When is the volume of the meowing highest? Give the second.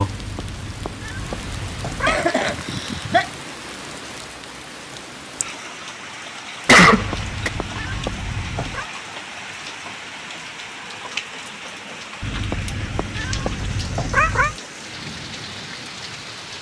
14 s.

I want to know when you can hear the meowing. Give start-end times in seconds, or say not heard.
0.1-2.2, 6.8-8.8, 12.2-14.6.